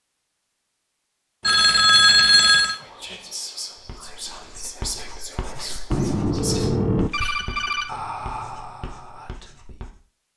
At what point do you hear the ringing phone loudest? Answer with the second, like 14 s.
2 s.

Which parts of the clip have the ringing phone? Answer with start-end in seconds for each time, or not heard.
1.4-2.8, 5.9-7.9.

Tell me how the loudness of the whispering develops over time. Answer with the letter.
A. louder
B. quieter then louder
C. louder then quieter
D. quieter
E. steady
E.